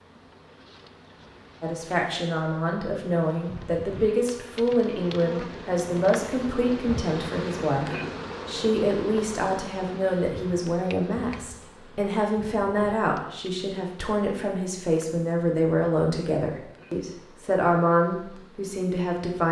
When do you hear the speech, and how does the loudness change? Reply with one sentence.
The speech can be heard from 1.6 to 19.4 s, at a steady volume.